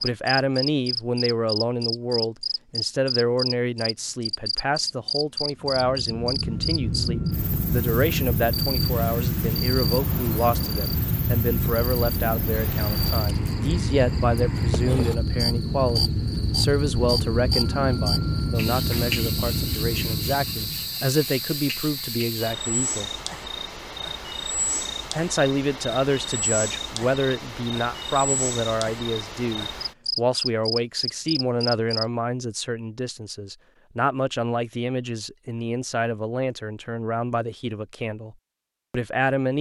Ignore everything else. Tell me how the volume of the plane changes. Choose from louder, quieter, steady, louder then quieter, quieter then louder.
steady.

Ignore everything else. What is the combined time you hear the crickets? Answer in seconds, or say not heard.
32 s.